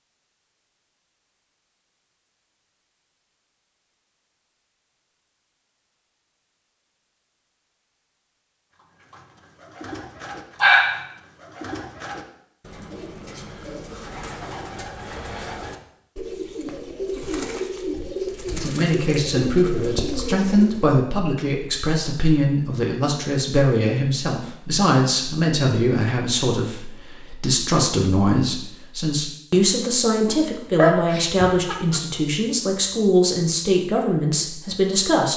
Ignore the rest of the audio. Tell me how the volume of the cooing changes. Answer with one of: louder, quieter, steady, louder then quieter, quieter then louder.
louder.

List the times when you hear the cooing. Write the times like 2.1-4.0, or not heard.
8.7-20.9.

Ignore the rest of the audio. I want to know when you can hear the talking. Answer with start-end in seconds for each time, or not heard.
18.6-35.3.